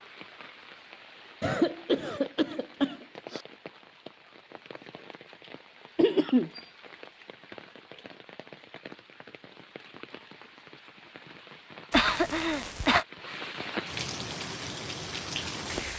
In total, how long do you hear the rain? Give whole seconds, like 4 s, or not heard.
16 s.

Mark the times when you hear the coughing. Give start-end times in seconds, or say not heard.
1.4-3.4, 6.0-6.6, 11.9-13.1.